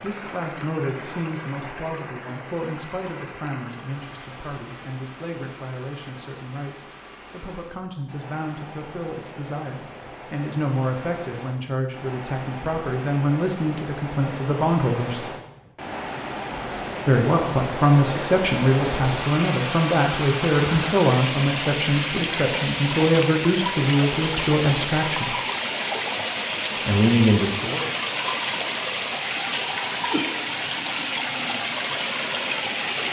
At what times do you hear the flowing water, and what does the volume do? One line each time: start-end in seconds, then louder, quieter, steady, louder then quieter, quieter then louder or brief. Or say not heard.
0.0-33.0 louder.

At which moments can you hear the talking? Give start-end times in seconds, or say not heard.
0.0-15.2, 17.1-25.3, 26.9-27.9.